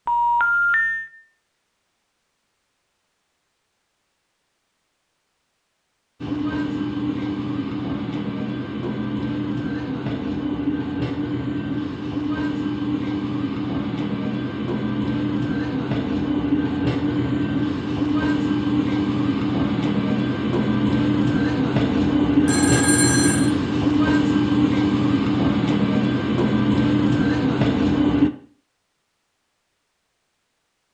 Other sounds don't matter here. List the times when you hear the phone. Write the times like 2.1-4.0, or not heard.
0.1-1.1, 22.4-23.5.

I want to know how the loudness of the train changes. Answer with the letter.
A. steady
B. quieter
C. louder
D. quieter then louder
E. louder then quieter
C.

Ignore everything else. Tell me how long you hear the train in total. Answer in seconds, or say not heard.
22 s.